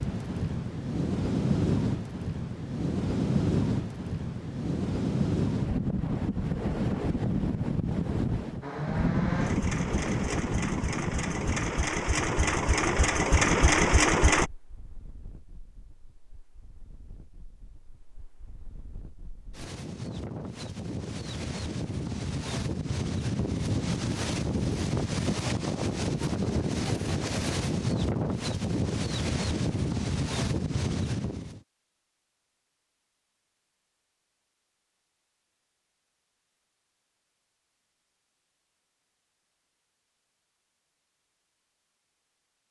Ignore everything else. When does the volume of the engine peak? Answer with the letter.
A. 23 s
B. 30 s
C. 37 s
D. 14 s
D.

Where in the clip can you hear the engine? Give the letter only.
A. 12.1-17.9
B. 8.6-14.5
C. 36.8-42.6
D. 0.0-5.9
B.